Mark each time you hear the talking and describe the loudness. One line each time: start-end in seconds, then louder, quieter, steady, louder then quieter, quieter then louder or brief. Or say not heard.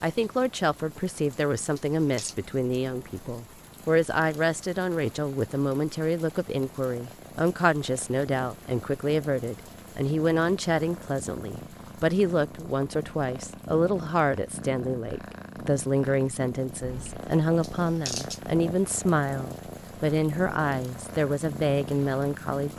0.0-22.7 steady.